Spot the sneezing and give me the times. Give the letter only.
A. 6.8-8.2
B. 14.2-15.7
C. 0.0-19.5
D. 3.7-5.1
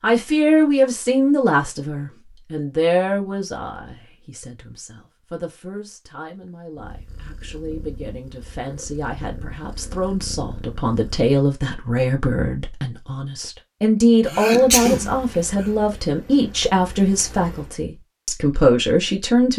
B.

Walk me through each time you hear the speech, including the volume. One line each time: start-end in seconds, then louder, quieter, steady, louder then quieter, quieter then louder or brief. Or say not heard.
0.0-19.5 quieter then louder.